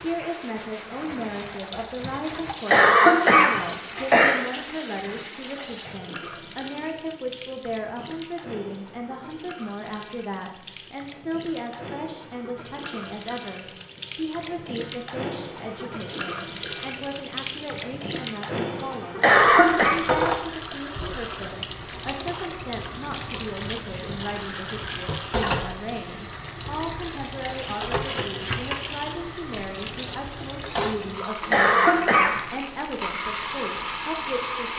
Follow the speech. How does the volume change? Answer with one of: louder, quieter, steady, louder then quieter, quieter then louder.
steady.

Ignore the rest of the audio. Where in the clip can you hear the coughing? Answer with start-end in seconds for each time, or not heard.
2.6-4.4, 19.2-20.0, 31.5-32.4.